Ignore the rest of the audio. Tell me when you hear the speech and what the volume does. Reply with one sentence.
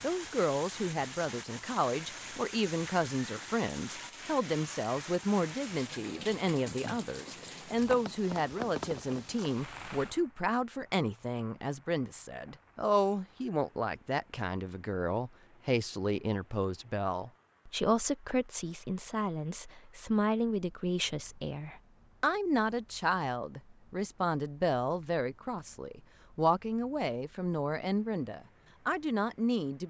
You can hear the speech from 0.0 to 29.8 s, at a steady volume.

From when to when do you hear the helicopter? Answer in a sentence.
The helicopter can't be heard in this clip.